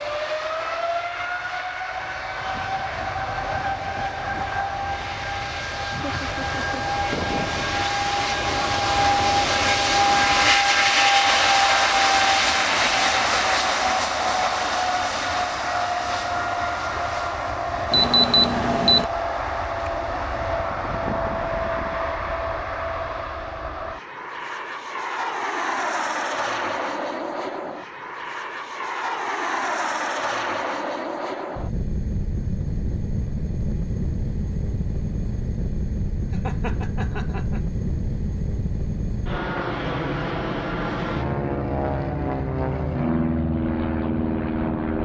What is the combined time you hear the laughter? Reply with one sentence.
You can hear the laughter for 2 seconds altogether.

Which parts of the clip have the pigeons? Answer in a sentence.
You can't hear the pigeons here.